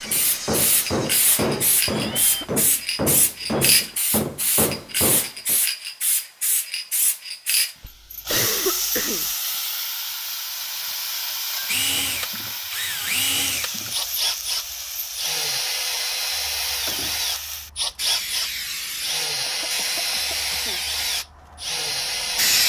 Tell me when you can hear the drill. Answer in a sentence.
The drill can be heard from 0.0 to 2.5 s and from 11.7 to 22.6 s.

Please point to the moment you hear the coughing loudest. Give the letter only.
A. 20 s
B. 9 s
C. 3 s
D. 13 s
B.